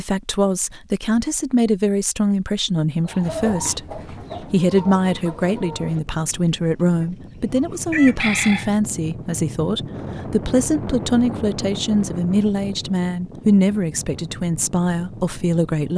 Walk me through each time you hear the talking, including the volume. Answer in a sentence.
You can hear the talking from 0.0 to 15.9 s, at a steady volume.